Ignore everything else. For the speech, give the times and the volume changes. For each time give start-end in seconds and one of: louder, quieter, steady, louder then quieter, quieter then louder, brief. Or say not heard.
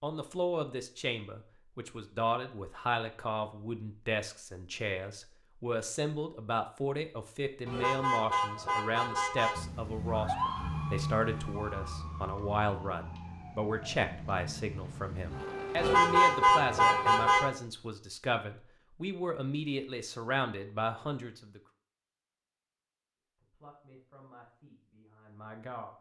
0.0-21.6 steady
23.4-25.9 brief.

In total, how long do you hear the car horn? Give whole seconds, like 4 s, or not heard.
4 s.